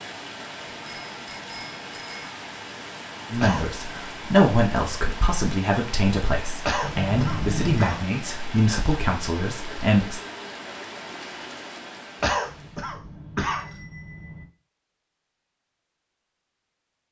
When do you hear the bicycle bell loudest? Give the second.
8 s.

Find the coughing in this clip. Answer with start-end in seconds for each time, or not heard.
3.4-4.1, 6.7-8.0, 12.2-13.7.